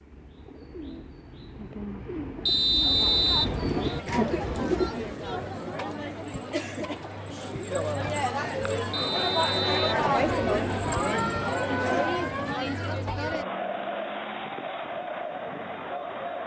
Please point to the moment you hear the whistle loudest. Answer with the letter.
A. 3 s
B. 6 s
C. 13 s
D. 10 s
A.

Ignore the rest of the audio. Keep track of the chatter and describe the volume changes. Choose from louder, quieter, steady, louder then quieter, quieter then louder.
louder then quieter.